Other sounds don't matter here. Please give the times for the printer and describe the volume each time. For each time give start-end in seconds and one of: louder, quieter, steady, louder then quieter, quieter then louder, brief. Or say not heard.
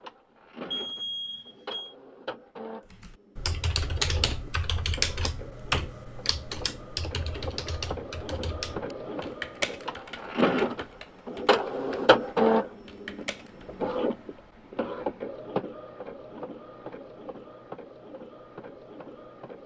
0.0-19.6 louder then quieter.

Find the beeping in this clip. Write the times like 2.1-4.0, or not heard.
0.7-1.9.